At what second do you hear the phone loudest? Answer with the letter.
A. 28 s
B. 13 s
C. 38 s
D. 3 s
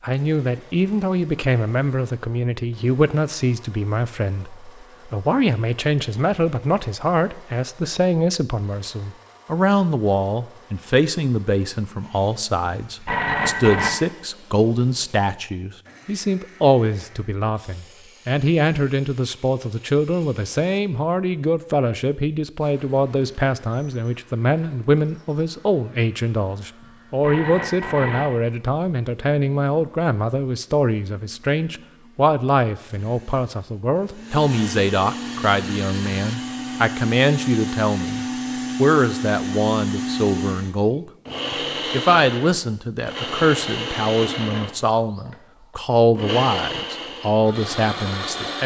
B.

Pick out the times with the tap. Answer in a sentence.
The tap can't be heard in this clip.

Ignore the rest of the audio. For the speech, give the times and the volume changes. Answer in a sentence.
The speech can be heard from 0.0 to 48.6 s, at a steady volume.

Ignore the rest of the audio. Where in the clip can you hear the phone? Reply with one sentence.
The phone can be heard from 12.7 to 13.9 s and from 26.8 to 28.3 s.